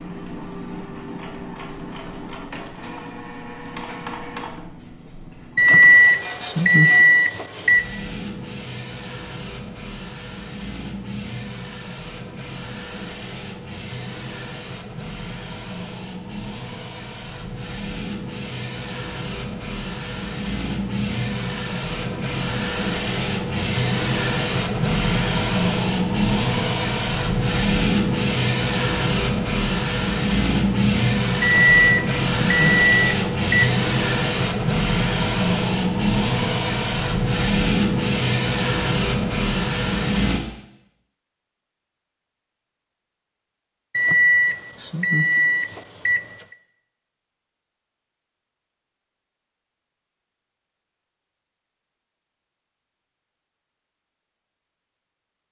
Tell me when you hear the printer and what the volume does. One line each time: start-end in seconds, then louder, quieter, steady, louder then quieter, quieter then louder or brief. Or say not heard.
0.0-40.5 louder.